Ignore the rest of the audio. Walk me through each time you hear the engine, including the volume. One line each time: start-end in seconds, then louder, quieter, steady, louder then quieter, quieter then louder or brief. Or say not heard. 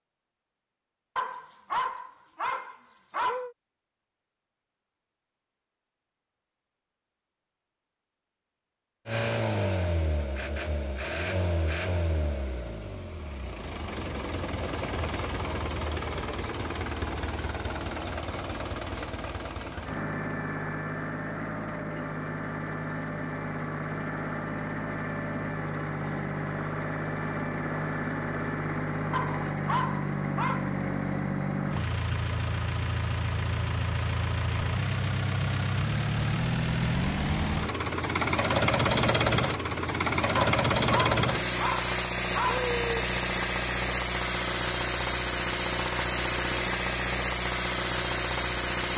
9.1-48.9 louder.